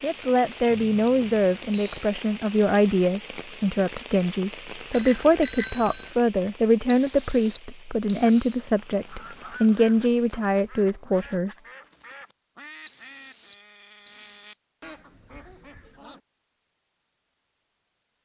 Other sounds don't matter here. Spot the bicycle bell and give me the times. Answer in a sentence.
You can hear the bicycle bell from 4.9 to 6.1 s.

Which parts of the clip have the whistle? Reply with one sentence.
The whistle can be heard from 0.7 to 2.0 s, from 6.8 to 8.7 s and from 12.8 to 14.6 s.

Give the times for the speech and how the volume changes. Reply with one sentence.
The speech can be heard from 0.0 to 11.6 s, at a steady volume.